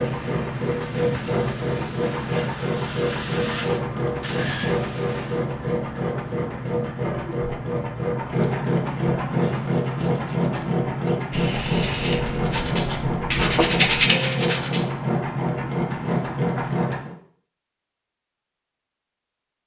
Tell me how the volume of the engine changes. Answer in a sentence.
The loudness of the engine stays about the same.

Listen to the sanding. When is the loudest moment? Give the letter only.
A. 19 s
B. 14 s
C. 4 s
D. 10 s
B.